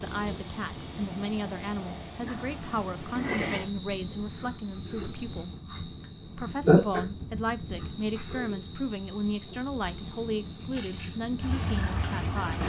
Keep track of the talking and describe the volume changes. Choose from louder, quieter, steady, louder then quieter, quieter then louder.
steady.